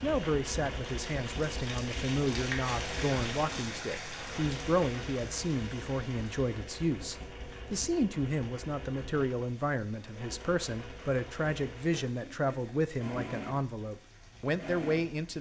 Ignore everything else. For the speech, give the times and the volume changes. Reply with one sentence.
The speech can be heard from 0.0 to 15.3 s, at a steady volume.